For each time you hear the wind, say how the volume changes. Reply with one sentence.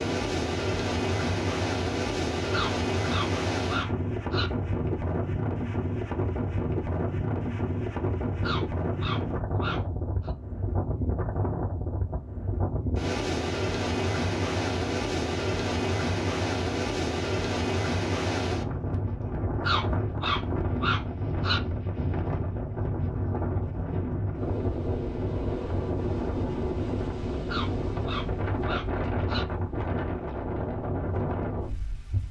You can hear the wind from 0.0 to 32.2 s, at a steady volume.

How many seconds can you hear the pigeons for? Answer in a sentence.
The pigeons can't be heard in this clip.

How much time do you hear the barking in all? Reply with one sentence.
You can hear the barking for 8 seconds altogether.